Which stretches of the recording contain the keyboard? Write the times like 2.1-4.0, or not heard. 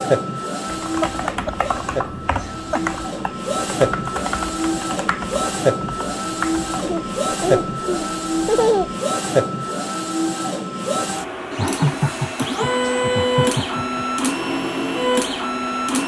0.7-7.2.